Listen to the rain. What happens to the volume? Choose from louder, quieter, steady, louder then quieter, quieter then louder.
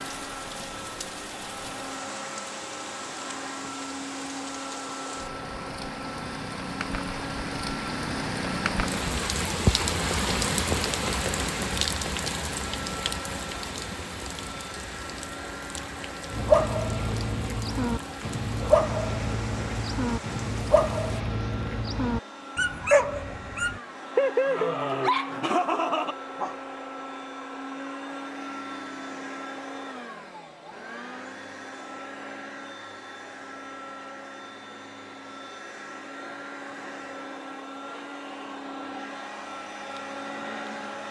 louder then quieter.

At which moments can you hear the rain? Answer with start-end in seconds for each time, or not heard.
0.0-21.2.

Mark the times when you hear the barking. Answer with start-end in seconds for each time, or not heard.
16.3-26.5.